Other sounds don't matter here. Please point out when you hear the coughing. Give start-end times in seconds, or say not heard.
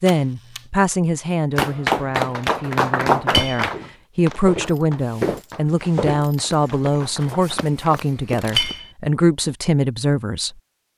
not heard.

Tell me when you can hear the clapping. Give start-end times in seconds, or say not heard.
1.6-8.6.